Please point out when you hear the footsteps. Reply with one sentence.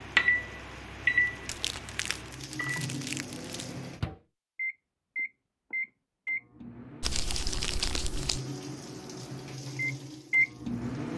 The footsteps can't be heard in this clip.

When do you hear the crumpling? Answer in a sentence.
You can hear the crumpling from 1.2 to 3.6 s and from 7.0 to 8.4 s.